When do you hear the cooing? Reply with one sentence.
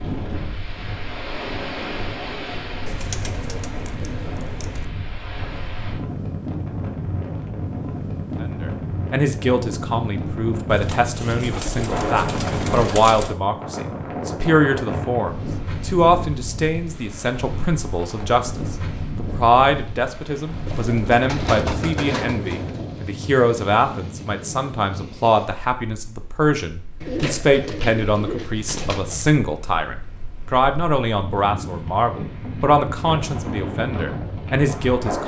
You can hear the cooing from 2.9 to 4.8 s, from 10.7 to 13.3 s, from 20.6 to 23.1 s and from 27.0 to 29.4 s.